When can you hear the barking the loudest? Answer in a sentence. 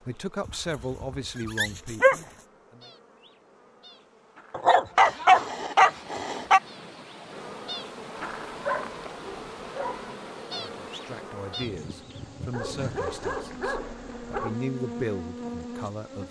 The volume of the barking peaks at 5 seconds.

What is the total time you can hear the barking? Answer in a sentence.
The barking can be heard for 8 seconds in total.